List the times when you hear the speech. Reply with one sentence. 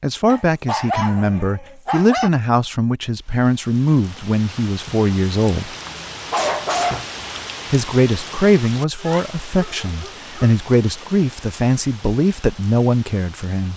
You can hear the speech from 0.0 to 5.7 s and from 7.7 to 13.7 s.